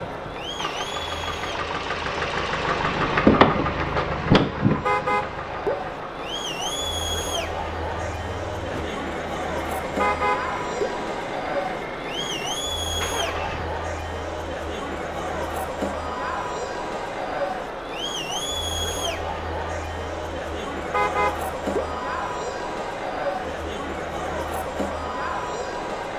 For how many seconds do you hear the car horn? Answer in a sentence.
The car horn can be heard for 3 seconds in total.